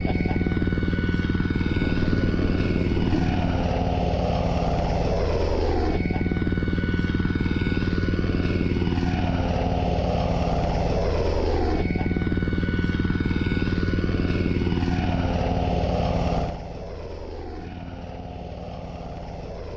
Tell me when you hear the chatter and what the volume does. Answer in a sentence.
You can't hear the chatter here.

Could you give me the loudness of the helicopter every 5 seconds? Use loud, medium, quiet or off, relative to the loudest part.
loud, loud, loud, medium.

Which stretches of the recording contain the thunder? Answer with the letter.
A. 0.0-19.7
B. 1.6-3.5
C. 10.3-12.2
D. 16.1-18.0
B.